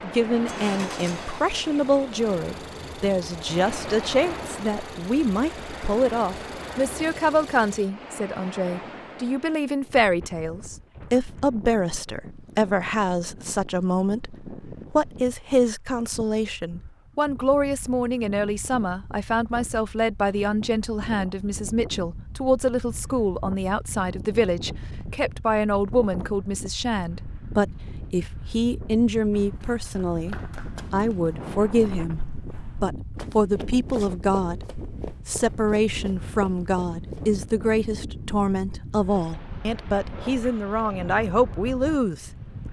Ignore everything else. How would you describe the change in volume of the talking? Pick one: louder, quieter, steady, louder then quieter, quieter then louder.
steady.